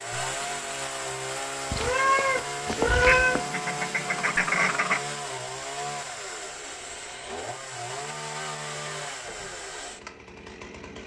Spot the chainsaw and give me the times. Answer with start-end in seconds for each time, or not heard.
0.0-11.0.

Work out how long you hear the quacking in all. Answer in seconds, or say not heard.
2 s.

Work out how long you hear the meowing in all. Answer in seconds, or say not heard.
2 s.